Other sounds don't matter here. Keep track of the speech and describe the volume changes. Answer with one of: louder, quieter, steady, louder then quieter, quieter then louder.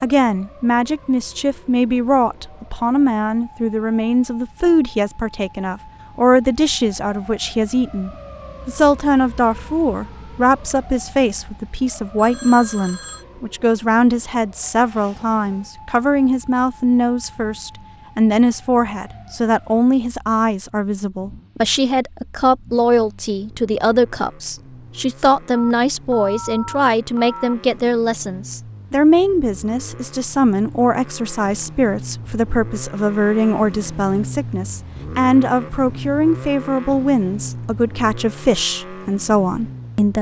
steady.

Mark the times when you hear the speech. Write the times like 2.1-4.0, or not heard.
0.0-40.1.